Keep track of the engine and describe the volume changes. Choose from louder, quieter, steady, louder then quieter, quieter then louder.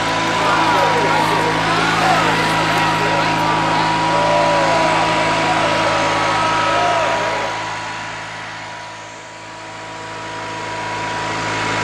quieter.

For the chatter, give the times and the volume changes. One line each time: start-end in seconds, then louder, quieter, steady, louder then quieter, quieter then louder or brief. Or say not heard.
0.2-7.8 steady.